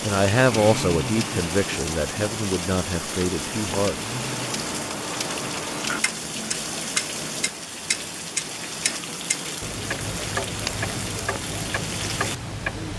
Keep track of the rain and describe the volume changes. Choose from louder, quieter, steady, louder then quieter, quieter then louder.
steady.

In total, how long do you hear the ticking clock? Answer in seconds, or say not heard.
13 s.